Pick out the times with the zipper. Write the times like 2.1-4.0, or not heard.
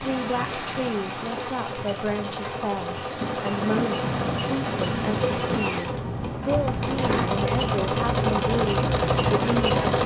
2.2-2.6, 6.5-7.3.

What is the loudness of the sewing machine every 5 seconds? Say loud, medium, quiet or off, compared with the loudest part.
medium, loud.